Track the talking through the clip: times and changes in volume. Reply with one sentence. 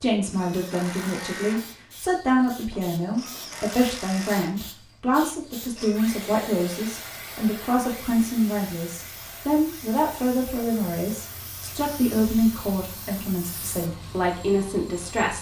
You can hear the talking from 0.0 to 15.3 s, at a steady volume.